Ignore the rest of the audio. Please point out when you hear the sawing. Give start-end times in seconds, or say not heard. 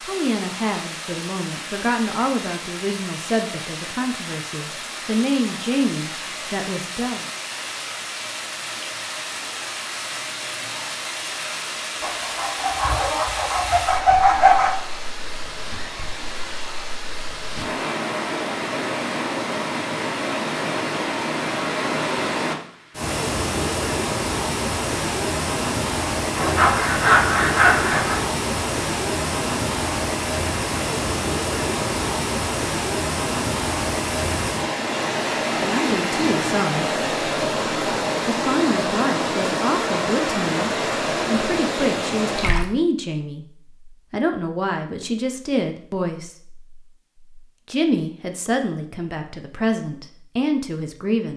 12.0-14.8, 26.4-28.2.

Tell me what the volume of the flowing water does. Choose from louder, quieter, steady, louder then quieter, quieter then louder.
louder.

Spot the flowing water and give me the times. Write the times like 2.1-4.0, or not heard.
0.0-42.6.